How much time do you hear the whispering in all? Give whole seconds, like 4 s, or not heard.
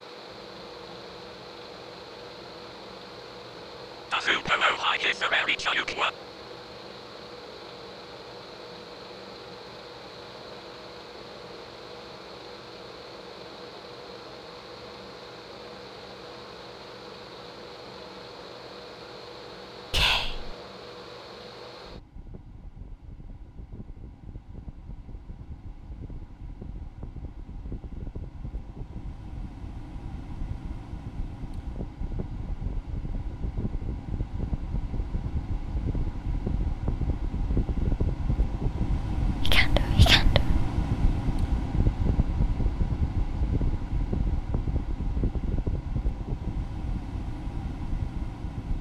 4 s.